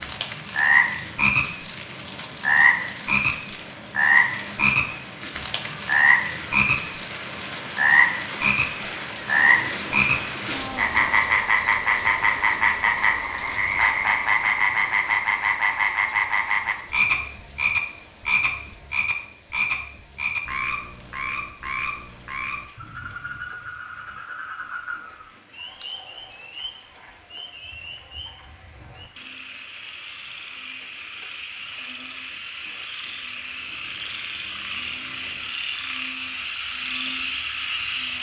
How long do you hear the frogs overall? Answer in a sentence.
You can hear the frogs for 38 seconds altogether.